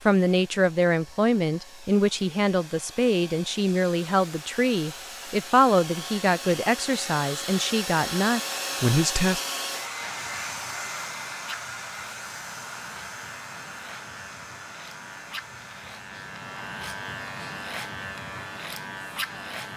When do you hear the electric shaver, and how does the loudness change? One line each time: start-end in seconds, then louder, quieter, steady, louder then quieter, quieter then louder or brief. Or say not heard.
10.0-19.7 louder.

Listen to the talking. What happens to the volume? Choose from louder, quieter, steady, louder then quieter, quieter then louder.
steady.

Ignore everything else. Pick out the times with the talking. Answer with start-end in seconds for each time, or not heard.
0.1-9.4.